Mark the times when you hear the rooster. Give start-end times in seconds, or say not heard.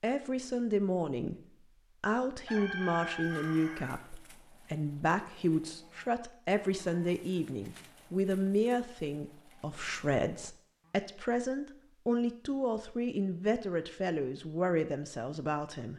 2.5-4.0.